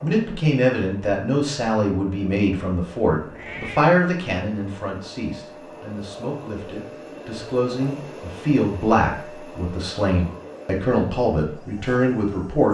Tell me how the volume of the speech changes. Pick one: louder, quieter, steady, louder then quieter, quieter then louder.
quieter then louder.